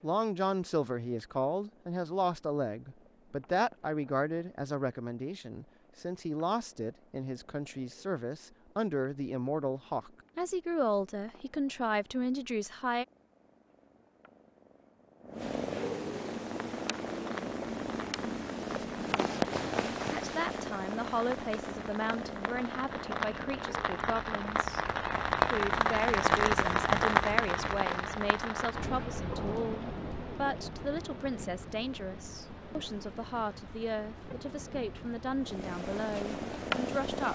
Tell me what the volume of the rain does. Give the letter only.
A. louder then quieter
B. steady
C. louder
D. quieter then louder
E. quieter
A.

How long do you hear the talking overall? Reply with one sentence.
The talking can be heard for 30 seconds in total.